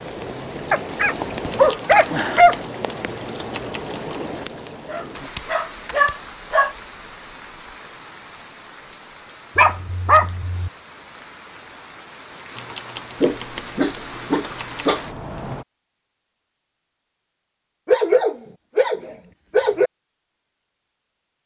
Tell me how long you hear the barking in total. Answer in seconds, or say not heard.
9 s.